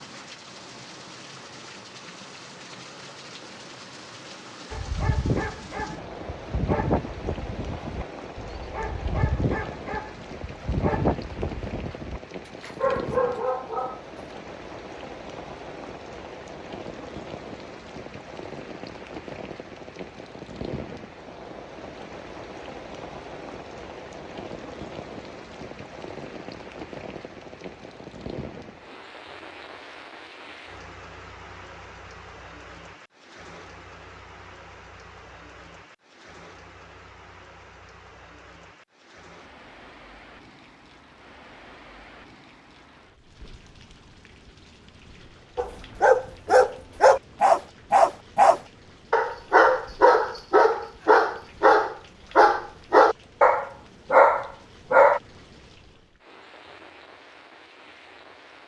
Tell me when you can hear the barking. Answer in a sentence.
You can hear the barking from 4.7 to 14.0 s and from 45.5 to 55.2 s.